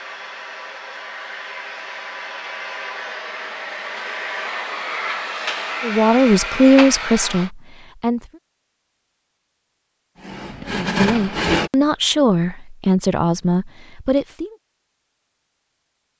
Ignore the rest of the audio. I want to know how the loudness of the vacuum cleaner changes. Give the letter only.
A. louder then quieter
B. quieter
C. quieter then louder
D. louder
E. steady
D.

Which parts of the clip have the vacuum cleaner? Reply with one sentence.
You can hear the vacuum cleaner from 0.0 to 7.5 s.